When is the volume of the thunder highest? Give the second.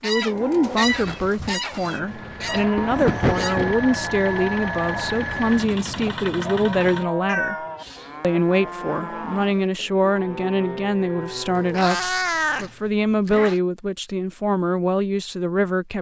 3 s.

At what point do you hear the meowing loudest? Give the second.
12 s.